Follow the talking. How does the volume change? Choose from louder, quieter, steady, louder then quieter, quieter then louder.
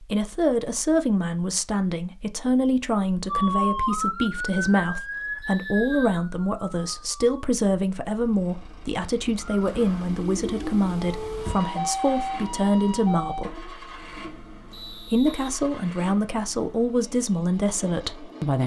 steady.